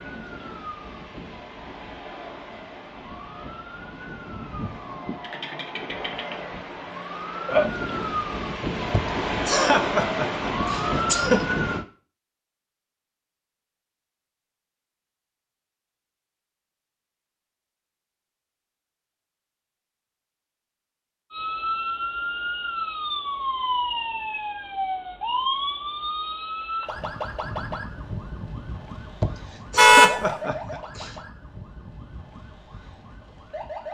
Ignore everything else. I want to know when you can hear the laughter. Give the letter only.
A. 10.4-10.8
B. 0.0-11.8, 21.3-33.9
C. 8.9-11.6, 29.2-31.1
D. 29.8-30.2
C.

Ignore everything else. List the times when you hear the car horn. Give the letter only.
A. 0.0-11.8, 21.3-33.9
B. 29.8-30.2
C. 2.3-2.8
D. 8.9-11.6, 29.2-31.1
B.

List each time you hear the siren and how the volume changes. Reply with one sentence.
The siren can be heard from 0.0 to 11.8 s, getting louder; and from 21.3 to 33.9 s, getting quieter.